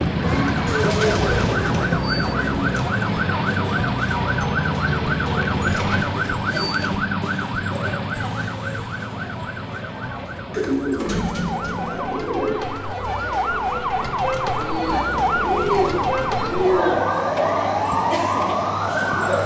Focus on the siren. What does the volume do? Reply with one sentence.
The loudness of the siren goes down, then up.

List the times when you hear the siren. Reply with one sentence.
The siren can be heard from 0.0 to 19.4 s.